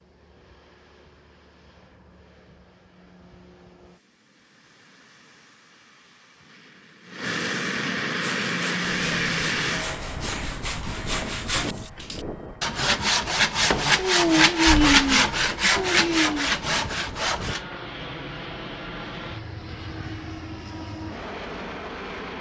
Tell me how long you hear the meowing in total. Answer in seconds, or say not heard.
2 s.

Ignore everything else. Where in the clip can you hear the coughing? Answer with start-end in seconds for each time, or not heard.
not heard.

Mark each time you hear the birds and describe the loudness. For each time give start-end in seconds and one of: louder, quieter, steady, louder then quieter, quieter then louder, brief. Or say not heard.
not heard.